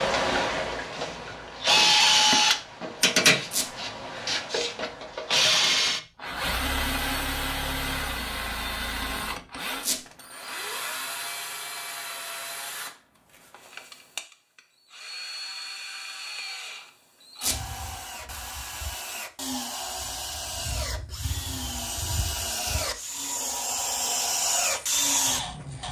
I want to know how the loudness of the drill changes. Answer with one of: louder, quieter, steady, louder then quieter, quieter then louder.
quieter then louder.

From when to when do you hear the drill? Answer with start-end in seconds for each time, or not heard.
0.0-25.8.